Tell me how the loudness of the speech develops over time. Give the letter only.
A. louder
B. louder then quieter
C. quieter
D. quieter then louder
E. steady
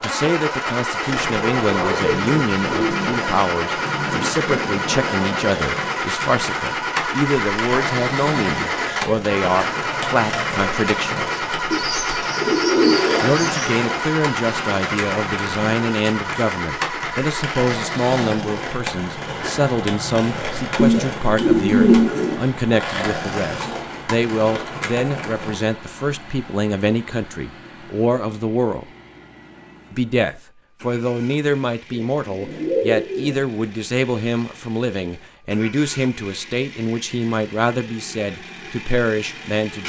E.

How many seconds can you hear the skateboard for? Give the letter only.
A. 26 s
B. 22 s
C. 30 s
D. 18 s
A.